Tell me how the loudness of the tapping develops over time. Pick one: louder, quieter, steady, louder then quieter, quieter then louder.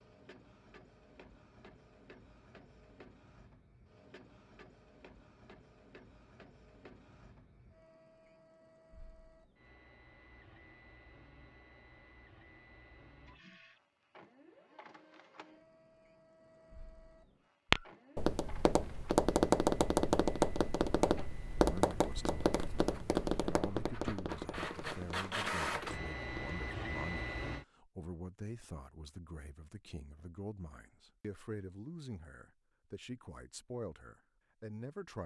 quieter.